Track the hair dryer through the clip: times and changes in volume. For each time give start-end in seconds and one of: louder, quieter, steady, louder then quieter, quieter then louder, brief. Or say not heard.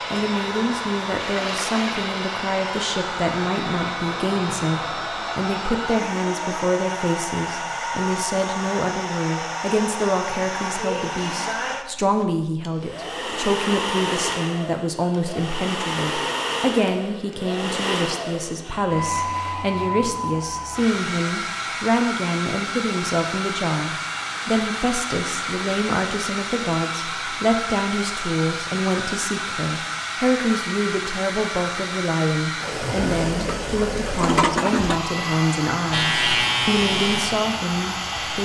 0.0-38.3 steady.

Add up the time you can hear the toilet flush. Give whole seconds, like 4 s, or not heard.
3 s.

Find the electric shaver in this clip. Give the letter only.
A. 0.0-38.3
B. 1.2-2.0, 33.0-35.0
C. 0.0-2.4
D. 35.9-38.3
D.